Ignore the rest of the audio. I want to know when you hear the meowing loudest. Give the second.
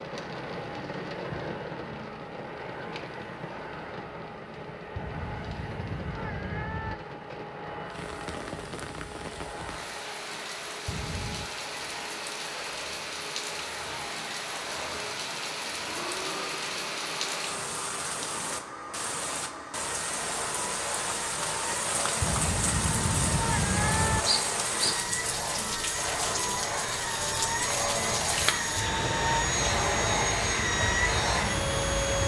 24 s.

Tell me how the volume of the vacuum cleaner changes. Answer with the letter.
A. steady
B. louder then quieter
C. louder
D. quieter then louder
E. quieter
C.